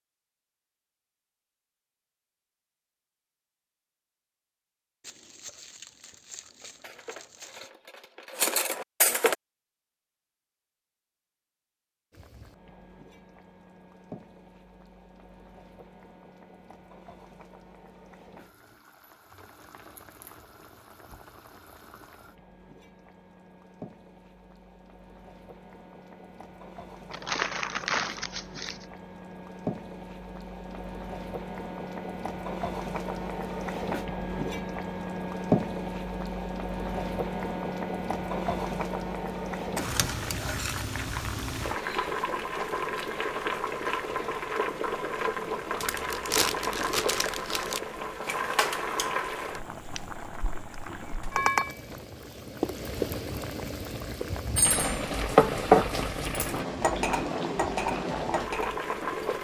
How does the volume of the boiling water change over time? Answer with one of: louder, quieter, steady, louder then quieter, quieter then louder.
louder.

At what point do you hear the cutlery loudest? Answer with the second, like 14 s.
56 s.